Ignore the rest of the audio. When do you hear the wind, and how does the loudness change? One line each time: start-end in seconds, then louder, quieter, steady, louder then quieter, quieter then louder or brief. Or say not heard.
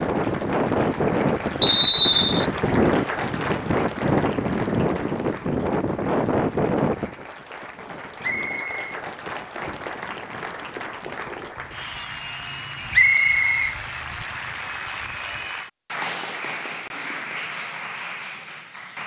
0.0-15.5 quieter.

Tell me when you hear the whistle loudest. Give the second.
2 s.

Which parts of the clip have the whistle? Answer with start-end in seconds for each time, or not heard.
1.6-2.5, 8.2-9.0, 12.9-13.8.